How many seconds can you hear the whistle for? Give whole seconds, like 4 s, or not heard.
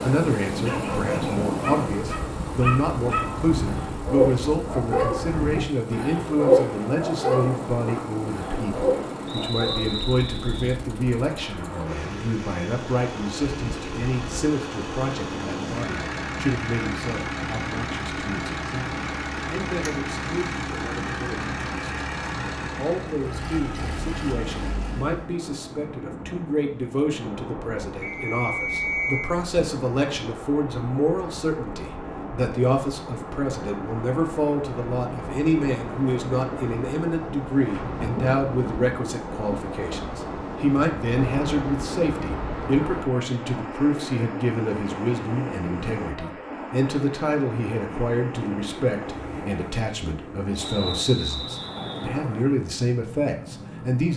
4 s.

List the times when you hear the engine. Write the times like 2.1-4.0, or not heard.
0.0-25.3.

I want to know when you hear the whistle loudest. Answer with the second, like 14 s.
29 s.